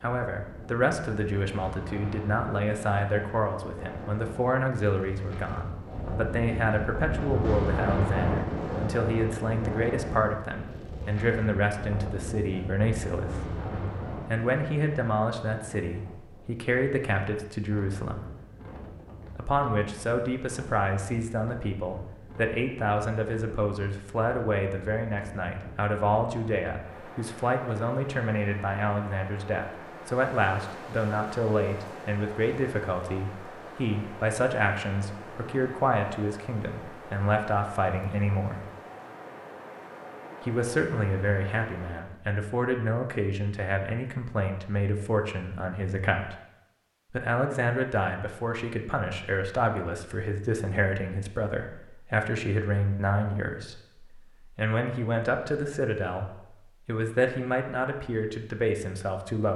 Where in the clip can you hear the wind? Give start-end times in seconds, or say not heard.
0.0-42.1.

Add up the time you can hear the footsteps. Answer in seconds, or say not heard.
not heard.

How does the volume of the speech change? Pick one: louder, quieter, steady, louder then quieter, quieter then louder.
steady.